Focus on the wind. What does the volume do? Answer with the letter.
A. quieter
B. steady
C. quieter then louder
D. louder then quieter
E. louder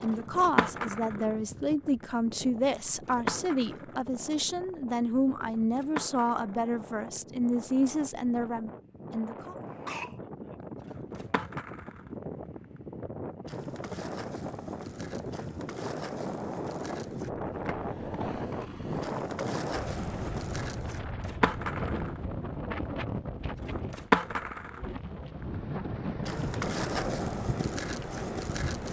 E.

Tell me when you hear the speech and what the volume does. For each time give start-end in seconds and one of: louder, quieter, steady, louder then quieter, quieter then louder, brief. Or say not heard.
0.0-9.6 steady.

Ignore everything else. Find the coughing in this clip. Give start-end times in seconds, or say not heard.
9.4-10.2.